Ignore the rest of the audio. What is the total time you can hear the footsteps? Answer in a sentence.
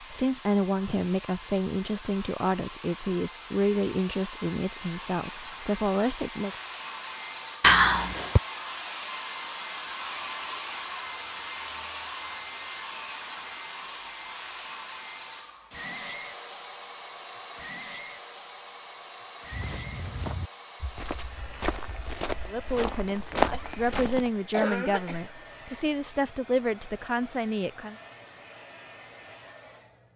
You can hear the footsteps for 5 seconds altogether.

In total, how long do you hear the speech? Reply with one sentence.
You can hear the speech for 12 seconds altogether.